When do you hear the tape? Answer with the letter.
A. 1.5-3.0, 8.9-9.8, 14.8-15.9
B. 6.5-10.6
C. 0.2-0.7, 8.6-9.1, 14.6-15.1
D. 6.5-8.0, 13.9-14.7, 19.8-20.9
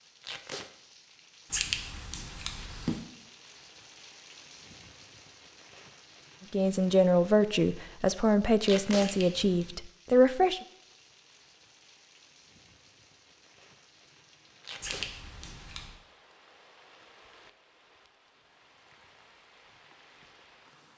C.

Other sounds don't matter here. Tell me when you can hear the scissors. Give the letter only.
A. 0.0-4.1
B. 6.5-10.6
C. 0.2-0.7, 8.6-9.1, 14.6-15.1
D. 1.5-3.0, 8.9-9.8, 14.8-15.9
D.